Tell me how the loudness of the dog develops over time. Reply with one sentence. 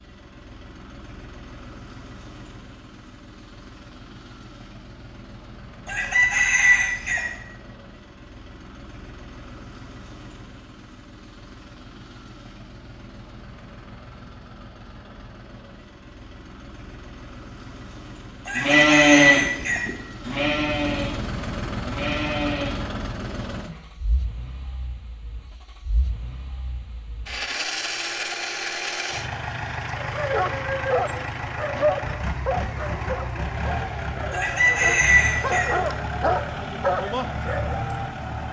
The volume of the dog goes down, then up.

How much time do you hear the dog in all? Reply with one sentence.
The dog can be heard for 8 seconds in total.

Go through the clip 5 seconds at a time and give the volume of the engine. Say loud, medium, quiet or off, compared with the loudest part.
quiet, quiet, quiet, quiet, loud, loud, loud, loud.